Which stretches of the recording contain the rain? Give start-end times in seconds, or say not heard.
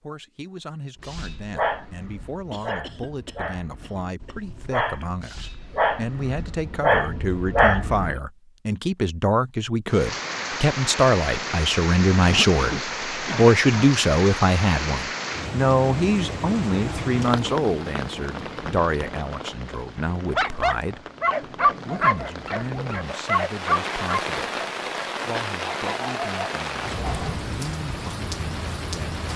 9.8-29.3.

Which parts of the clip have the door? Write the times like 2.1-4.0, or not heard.
not heard.